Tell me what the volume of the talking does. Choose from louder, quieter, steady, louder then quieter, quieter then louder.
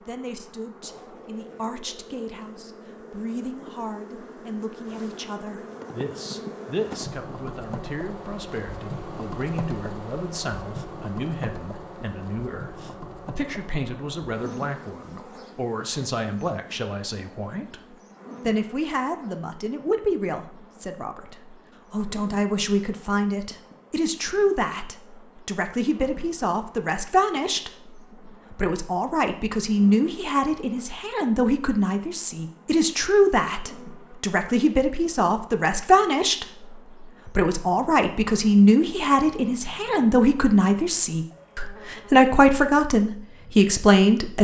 louder.